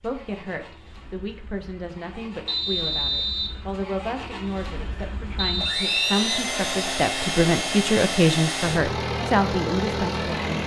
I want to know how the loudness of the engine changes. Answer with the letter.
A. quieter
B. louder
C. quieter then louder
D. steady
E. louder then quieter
B.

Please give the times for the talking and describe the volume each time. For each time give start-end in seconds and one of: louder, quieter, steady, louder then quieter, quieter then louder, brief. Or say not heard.
0.0-10.6 louder.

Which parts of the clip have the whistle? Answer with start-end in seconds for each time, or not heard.
2.5-3.6, 5.3-6.3.